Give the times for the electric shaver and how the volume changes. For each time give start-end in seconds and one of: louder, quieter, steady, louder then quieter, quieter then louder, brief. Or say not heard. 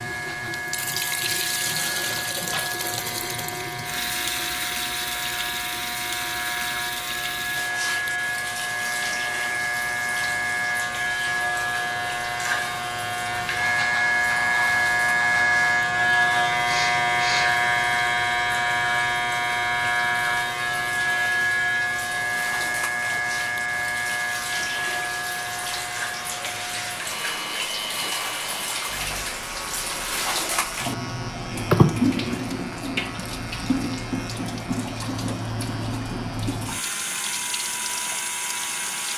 0.0-39.1 louder then quieter.